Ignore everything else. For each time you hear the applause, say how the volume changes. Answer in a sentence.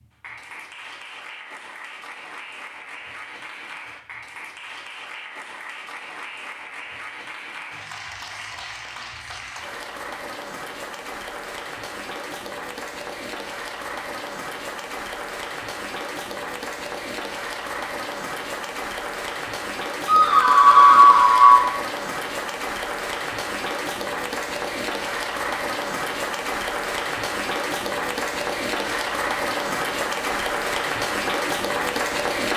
You can hear the applause from 0.0 to 32.5 s, getting louder.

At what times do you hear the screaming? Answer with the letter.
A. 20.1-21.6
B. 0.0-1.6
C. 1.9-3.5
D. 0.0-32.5
A.